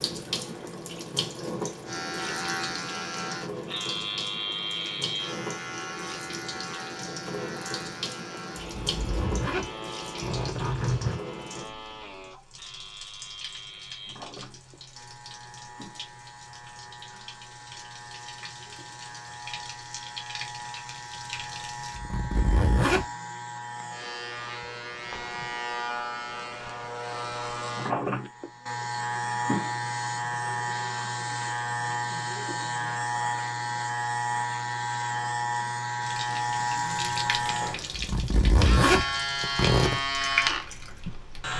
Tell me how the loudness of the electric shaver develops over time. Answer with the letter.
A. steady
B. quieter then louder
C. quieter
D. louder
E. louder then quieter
B.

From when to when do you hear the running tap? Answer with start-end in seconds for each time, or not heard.
0.0-22.0, 36.0-41.5.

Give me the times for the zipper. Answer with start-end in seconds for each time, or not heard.
8.6-11.2, 21.9-23.1, 37.9-40.0.